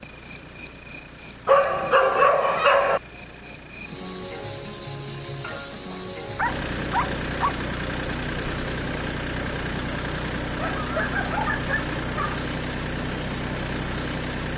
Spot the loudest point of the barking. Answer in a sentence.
The volume of the barking peaks at 2 seconds.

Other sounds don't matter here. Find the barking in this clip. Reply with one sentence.
The barking can be heard from 1.4 to 3.0 s, from 5.9 to 7.5 s and from 10.6 to 12.4 s.